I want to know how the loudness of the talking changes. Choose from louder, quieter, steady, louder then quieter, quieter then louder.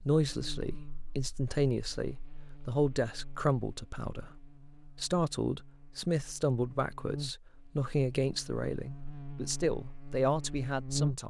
steady.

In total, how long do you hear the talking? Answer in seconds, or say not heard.
11 s.